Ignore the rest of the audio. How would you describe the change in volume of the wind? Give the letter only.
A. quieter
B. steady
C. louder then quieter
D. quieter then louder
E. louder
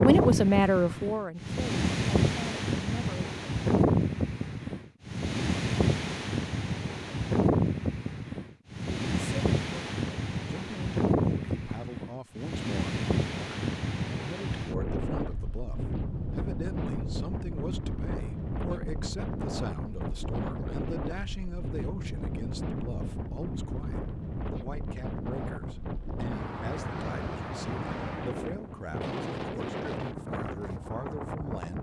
A.